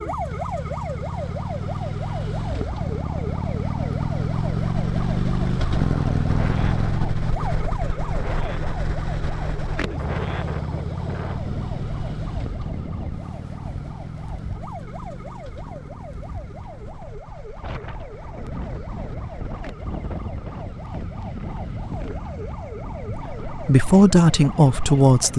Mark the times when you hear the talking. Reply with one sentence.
You can hear the talking from 23.1 to 25.3 s.